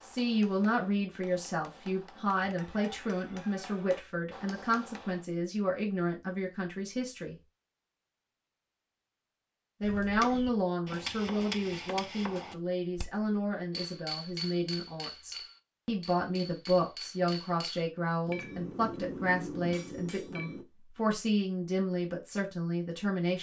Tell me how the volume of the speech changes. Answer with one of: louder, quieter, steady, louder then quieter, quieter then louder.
steady.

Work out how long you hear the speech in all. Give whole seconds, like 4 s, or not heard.
21 s.